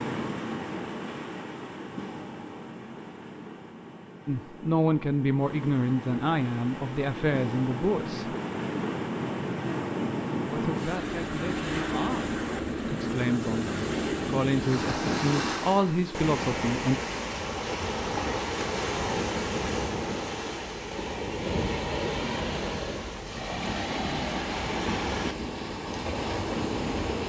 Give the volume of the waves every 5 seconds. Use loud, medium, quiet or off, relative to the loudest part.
medium, loud, loud, loud, loud, loud.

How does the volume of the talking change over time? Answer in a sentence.
The loudness of the talking goes down, then up.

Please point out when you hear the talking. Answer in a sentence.
You can hear the talking from 4.2 to 8.3 s and from 10.4 to 17.0 s.